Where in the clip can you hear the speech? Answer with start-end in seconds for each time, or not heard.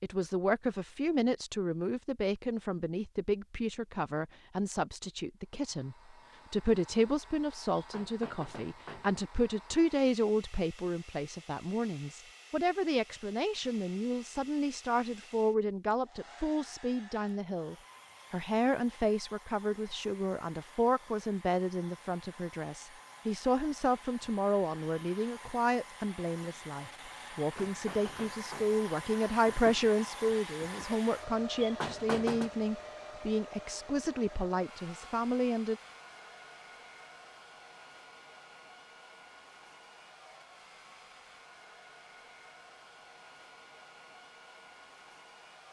0.0-35.8.